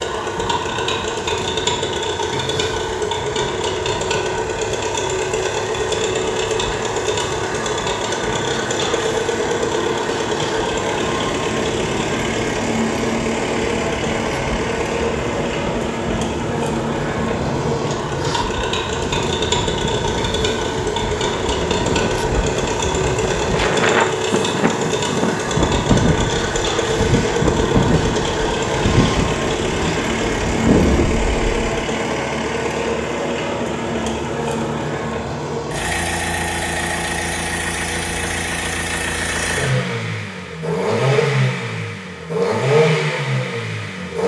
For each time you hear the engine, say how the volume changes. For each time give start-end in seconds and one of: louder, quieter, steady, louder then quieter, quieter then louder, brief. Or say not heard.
0.0-44.2 steady.